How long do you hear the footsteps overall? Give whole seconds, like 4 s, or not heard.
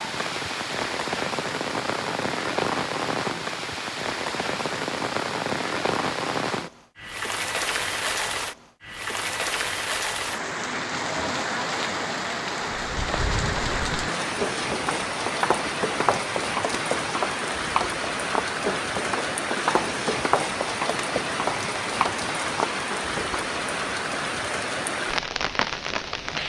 11 s.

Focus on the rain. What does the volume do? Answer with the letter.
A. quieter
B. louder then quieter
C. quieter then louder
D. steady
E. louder
D.